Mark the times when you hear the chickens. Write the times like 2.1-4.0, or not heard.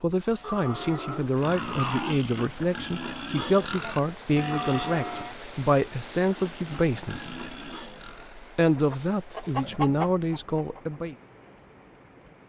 8.8-11.0.